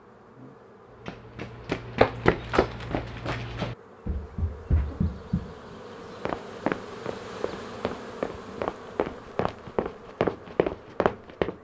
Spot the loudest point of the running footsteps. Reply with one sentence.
The loudest moment of the running footsteps is at 2 seconds.